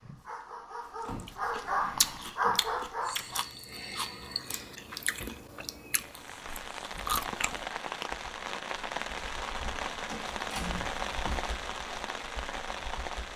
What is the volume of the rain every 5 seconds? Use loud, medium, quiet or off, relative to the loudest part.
off, loud, loud.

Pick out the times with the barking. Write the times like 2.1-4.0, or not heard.
0.0-3.5.